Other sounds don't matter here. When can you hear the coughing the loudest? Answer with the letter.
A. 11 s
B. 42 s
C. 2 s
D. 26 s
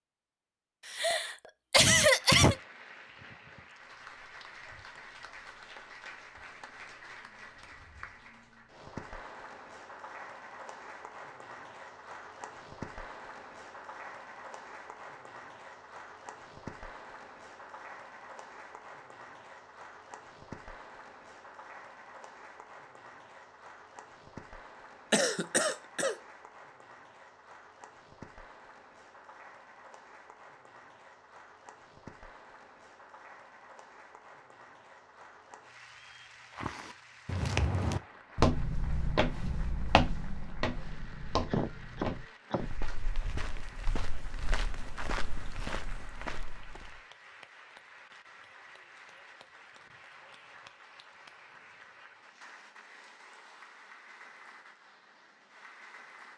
C.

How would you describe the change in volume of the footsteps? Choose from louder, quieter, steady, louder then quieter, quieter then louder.
quieter.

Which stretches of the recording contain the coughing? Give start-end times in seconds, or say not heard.
0.8-2.5, 25.1-26.1, 41.5-42.7.